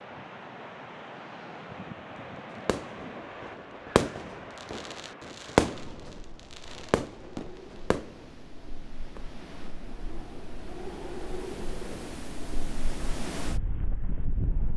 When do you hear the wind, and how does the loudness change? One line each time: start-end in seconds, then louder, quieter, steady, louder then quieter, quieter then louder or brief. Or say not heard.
0.0-14.7 quieter then louder.